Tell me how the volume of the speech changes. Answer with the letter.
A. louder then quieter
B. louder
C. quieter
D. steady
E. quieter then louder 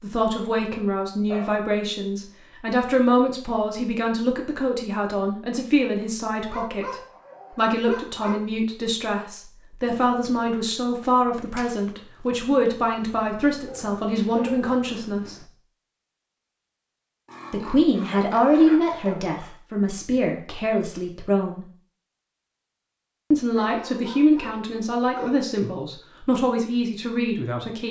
D.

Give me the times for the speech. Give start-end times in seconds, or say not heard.
0.0-15.4, 17.5-21.6, 23.3-27.8.